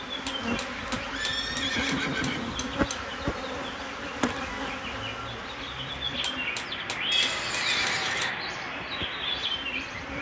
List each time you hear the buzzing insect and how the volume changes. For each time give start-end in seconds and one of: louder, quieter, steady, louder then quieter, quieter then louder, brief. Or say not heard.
0.0-10.1 quieter.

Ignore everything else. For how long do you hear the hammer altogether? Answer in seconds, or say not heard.
5 s.